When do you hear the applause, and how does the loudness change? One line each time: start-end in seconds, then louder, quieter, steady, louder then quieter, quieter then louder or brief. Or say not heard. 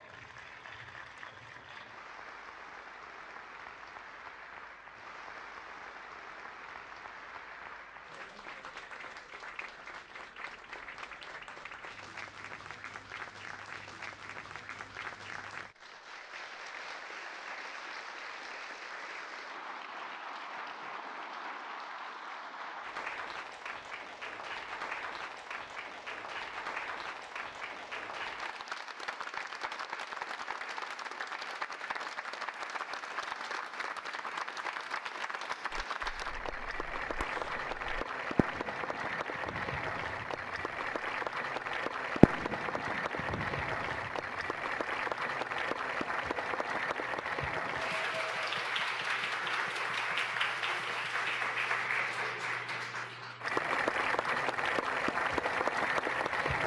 0.0-56.6 louder.